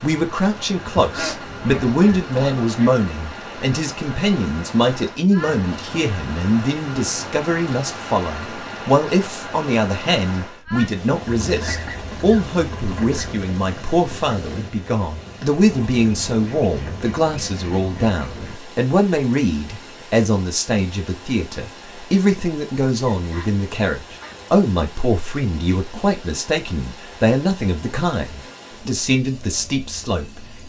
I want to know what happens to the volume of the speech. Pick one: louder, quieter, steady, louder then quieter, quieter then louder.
steady.